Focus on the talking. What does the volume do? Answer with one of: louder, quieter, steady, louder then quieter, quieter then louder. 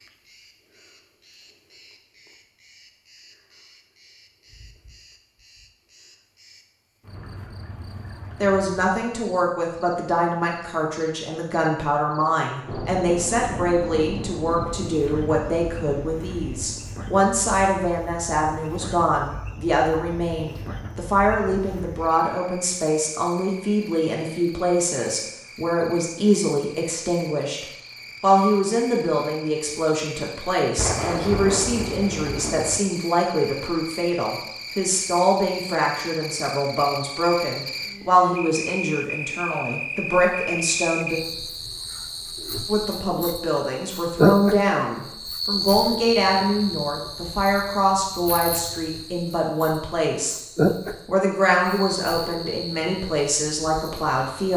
steady.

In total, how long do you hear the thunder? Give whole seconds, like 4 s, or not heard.
6 s.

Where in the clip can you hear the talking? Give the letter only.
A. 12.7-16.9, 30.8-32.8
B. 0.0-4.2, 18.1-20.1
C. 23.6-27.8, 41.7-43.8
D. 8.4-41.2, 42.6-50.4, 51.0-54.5
D.